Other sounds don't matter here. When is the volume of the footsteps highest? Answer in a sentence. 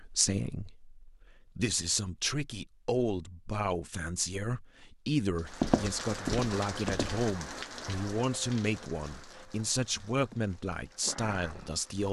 The loudest moment of the footsteps is at 6 seconds.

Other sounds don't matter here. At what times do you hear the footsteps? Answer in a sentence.
You can hear the footsteps from 5.5 to 7.2 s.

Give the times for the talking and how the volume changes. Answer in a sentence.
The talking can be heard from 0.0 to 12.0 s, at a steady volume.